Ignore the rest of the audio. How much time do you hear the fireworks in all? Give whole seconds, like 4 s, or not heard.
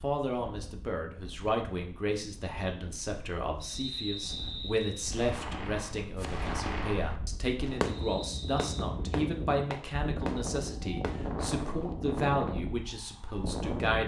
7 s.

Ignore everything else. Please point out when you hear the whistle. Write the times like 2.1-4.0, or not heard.
3.6-5.1, 7.8-8.8.